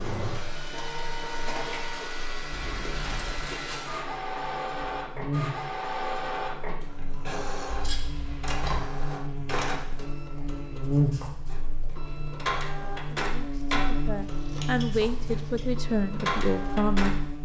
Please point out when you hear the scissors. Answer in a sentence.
You can hear the scissors from 2.5 to 3.5 s, from 7.7 to 8.8 s and from 14.4 to 14.8 s.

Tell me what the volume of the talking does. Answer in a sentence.
The volume of the talking goes up.